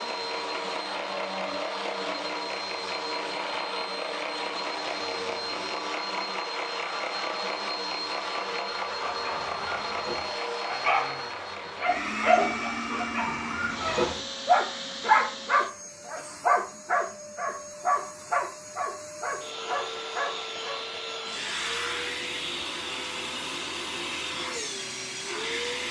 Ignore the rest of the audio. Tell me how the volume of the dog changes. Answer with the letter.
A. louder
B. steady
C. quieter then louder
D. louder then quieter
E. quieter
D.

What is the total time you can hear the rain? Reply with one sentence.
The rain can't be heard in this clip.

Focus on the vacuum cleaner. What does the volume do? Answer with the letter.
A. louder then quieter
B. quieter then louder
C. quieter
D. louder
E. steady
B.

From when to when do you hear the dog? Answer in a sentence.
The dog can be heard from 8.9 to 20.8 s.